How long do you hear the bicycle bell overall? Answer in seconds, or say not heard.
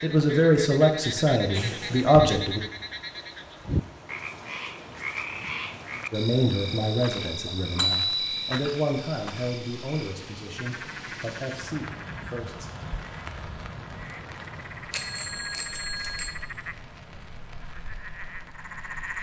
3 s.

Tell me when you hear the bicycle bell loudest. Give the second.
8 s.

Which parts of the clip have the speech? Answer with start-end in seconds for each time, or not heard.
0.0-2.6, 6.1-12.7.